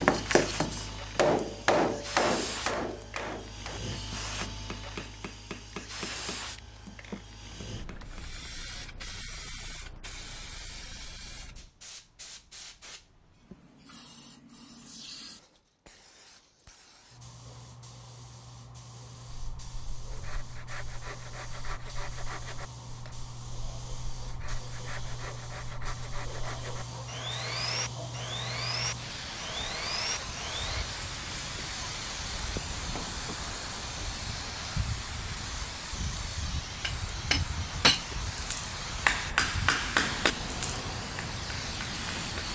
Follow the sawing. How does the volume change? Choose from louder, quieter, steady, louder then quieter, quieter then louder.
louder.